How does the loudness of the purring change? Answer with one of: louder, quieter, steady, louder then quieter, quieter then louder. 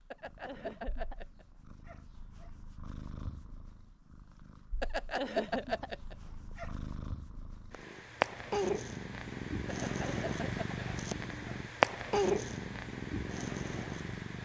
louder.